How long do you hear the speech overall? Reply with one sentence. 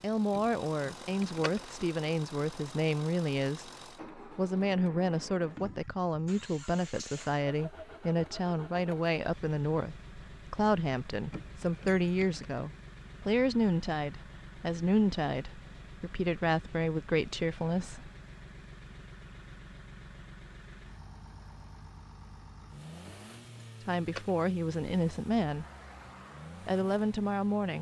You can hear the speech for 21 seconds altogether.